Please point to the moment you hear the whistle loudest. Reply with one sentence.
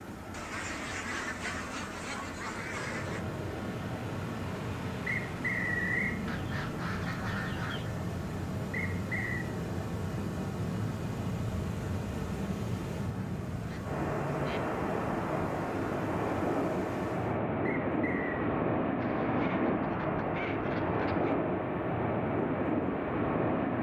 The volume of the whistle peaks at 6 seconds.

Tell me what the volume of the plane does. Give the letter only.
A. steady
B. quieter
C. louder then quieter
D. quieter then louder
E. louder
E.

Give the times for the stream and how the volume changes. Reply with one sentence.
You can hear the stream from 0.0 to 17.4 s, at a steady volume.